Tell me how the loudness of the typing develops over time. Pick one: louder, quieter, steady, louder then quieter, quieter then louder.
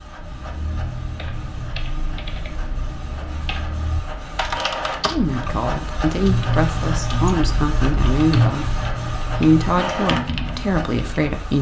louder.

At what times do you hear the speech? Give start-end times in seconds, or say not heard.
5.1-11.5.